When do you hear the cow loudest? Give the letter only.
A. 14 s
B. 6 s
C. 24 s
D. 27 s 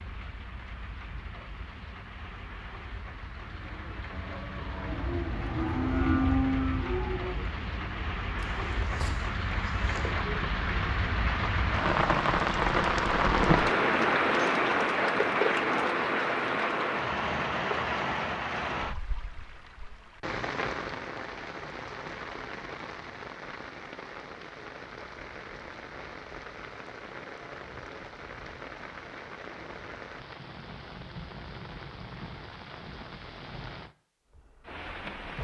B.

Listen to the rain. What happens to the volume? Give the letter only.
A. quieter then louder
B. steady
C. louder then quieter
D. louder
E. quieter
C.